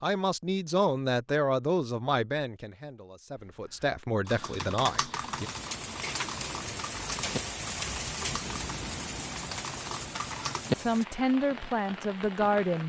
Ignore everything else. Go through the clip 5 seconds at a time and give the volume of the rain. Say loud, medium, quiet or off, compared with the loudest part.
off, loud, medium.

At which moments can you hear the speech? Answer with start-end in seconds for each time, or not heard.
0.0-5.5, 10.8-12.8.